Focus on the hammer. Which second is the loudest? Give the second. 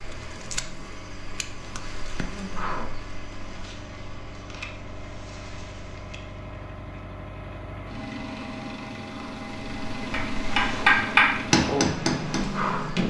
11 s.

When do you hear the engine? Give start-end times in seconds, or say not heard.
0.0-13.0.